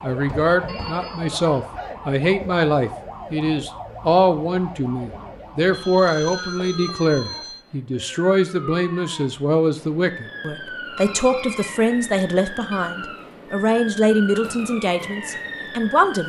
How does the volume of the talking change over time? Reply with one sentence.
The volume of the talking stays about the same.